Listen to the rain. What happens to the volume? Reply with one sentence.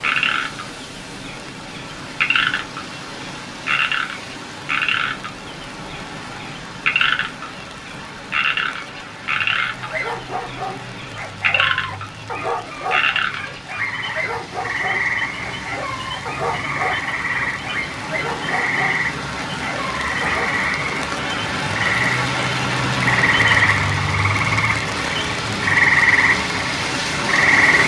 The loudness of the rain goes up.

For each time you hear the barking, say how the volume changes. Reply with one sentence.
The barking can be heard from 9.7 to 20.6 s, at a steady volume.